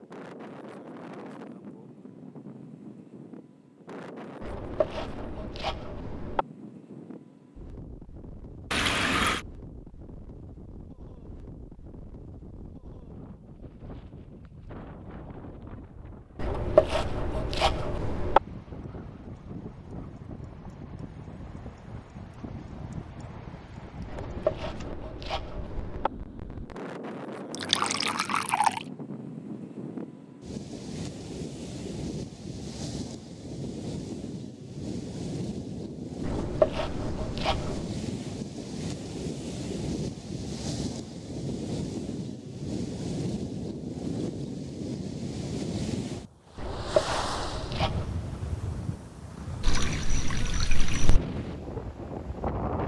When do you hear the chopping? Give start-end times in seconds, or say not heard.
4.4-6.5, 16.4-18.4, 24.1-26.1, 36.2-37.9, 46.5-48.1.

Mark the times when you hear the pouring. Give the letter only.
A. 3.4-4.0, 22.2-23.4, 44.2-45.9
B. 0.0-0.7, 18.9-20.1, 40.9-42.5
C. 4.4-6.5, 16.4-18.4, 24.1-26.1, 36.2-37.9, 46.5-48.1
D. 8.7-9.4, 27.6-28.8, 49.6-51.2
D.